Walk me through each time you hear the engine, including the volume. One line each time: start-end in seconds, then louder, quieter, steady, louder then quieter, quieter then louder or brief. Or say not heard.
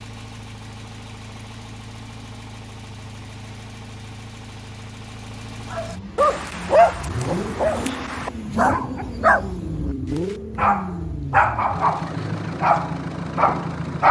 0.0-14.0 louder.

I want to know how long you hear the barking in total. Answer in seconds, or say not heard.
8 s.